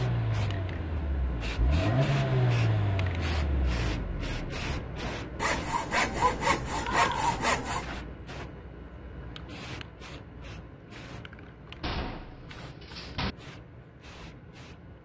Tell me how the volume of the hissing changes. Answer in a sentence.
The volume of the hissing goes down.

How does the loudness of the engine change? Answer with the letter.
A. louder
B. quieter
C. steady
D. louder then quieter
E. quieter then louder
D.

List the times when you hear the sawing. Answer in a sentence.
You can hear the sawing from 5.3 to 7.8 s.